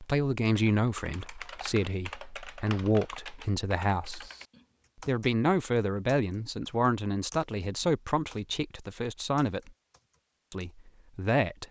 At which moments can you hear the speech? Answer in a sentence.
You can hear the speech from 0.0 to 4.3 s, from 5.0 to 9.7 s and from 10.5 to 11.6 s.